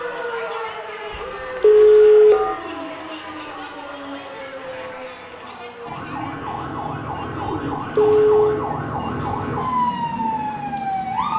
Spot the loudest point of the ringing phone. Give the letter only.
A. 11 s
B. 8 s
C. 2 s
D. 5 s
C.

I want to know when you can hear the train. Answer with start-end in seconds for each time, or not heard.
8.8-11.3.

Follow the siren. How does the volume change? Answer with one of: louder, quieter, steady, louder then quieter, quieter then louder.
louder.